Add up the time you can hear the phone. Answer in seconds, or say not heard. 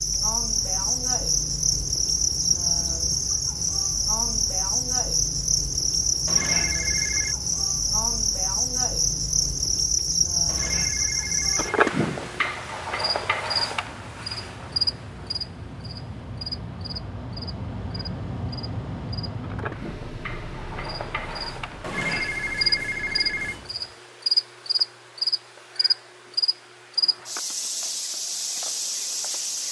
4 s.